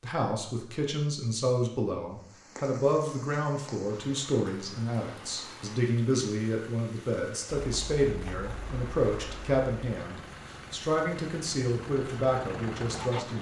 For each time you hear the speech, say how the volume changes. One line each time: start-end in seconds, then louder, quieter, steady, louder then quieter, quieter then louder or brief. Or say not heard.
0.0-13.3 steady.